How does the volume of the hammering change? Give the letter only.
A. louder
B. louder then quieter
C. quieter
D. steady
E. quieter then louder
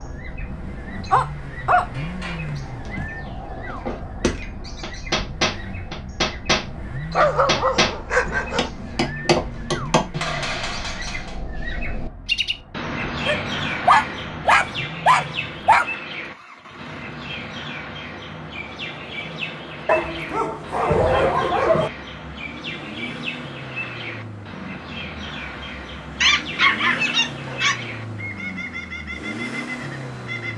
A.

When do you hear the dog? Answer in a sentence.
The dog can be heard from 1.1 to 1.9 s, from 2.5 to 3.0 s, from 7.1 to 8.7 s, from 13.2 to 15.9 s, from 19.9 to 21.9 s and from 26.2 to 27.9 s.